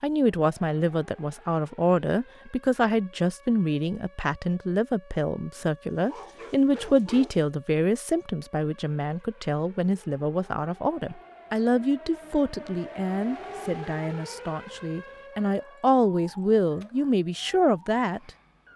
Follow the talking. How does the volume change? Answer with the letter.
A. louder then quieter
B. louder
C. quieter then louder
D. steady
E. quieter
D.